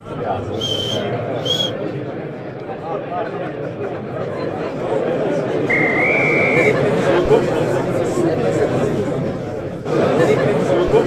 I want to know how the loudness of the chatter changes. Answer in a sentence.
The loudness of the chatter goes up.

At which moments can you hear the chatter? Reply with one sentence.
The chatter can be heard from 0.0 to 11.0 s.